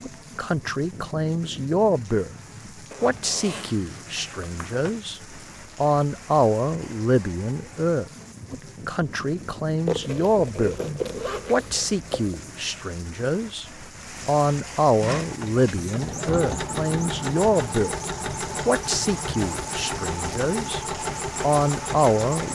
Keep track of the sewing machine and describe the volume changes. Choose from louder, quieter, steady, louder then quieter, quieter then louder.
steady.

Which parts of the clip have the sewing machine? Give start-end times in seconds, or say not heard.
15.0-22.5.